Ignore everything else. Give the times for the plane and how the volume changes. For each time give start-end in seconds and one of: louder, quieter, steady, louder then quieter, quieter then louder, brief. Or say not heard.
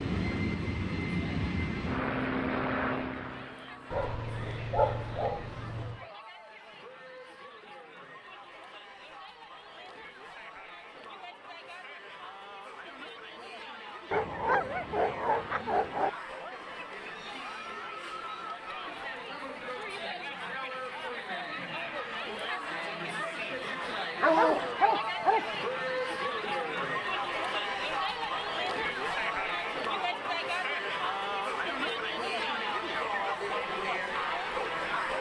0.0-4.1 quieter.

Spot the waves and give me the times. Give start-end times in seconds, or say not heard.
not heard.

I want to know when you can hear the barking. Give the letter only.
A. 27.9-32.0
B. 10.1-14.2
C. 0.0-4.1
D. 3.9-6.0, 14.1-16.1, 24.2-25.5
D.